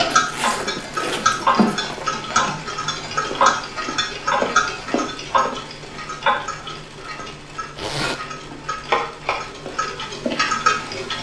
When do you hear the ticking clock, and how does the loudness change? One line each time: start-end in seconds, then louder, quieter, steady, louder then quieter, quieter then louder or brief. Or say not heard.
0.0-11.1 quieter then louder.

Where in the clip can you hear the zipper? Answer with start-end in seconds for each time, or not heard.
0.1-2.1, 7.8-8.2.